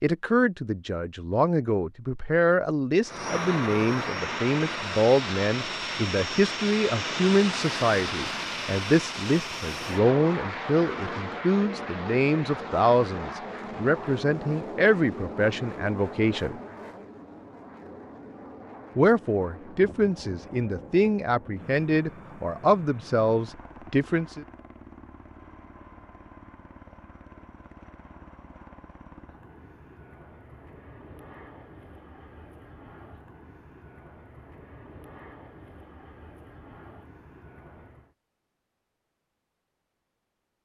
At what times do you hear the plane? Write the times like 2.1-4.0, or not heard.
3.0-38.1.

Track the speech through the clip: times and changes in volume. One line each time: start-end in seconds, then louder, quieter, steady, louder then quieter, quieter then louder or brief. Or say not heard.
0.0-16.6 steady
18.9-24.4 steady.